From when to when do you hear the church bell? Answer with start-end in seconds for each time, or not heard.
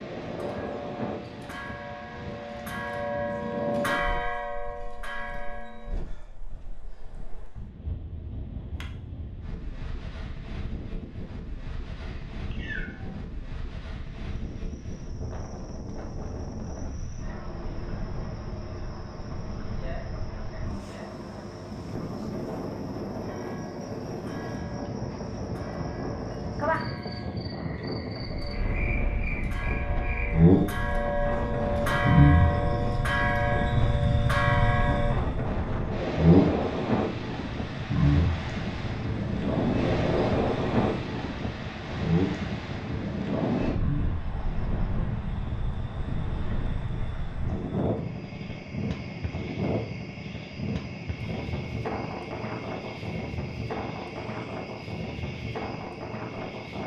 0.2-6.0, 23.2-35.1.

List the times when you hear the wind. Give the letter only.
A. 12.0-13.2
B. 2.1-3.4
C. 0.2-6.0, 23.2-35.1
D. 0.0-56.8
D.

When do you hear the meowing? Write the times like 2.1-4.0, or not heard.
12.0-13.2.